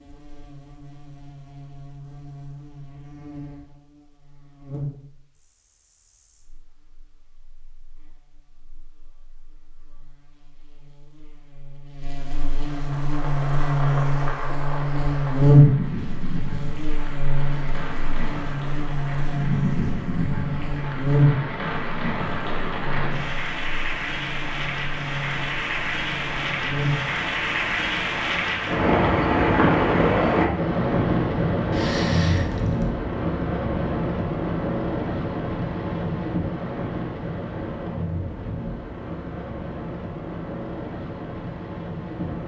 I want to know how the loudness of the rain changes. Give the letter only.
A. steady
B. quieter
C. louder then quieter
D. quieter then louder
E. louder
C.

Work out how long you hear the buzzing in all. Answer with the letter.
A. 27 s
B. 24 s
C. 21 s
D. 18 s
A.